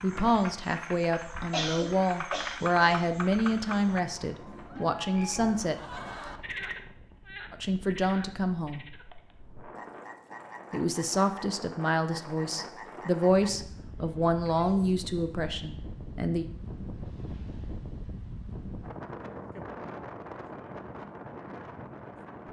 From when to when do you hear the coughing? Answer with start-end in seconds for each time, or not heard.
1.5-2.9.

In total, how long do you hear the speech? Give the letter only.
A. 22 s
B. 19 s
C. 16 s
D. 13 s
D.